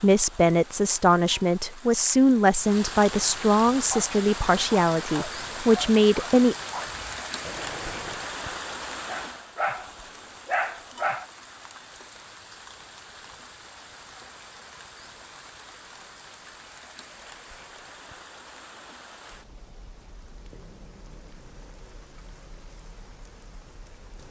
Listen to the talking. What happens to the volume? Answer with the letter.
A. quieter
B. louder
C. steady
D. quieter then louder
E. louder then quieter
C.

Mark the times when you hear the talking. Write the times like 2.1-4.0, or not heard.
0.0-6.5.